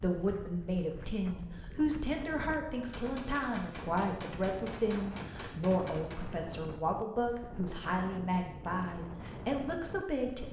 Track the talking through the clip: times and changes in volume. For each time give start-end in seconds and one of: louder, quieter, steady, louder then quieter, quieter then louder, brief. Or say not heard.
0.0-10.4 steady.